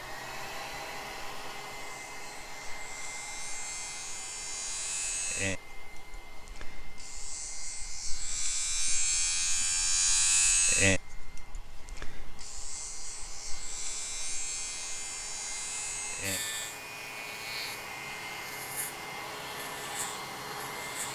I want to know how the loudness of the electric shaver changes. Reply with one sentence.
The volume of the electric shaver goes up, then down.